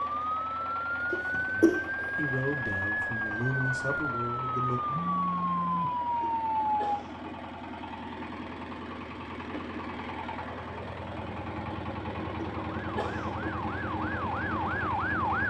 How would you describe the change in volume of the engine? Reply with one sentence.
The volume of the engine goes up.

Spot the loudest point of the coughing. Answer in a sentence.
The loudest moment of the coughing is at 2 seconds.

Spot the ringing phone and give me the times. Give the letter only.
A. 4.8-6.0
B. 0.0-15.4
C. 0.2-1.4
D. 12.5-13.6
A.